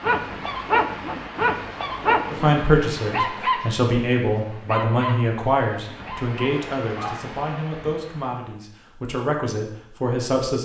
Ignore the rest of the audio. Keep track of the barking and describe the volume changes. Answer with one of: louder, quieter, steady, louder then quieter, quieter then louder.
quieter.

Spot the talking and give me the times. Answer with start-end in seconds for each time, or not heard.
2.3-10.6.